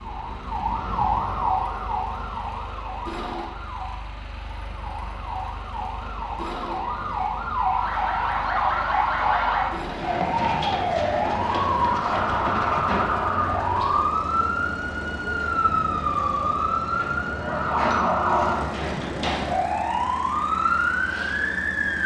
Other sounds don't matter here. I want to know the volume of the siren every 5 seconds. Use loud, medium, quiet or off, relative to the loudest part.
medium, loud, loud, loud, loud.